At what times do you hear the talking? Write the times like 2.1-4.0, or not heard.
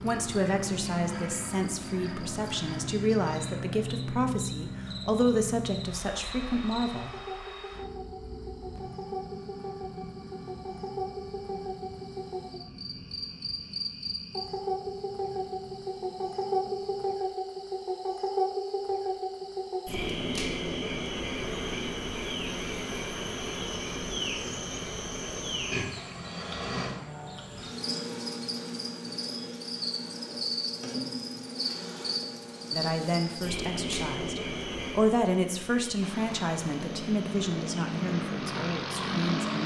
0.0-7.1, 32.7-39.6.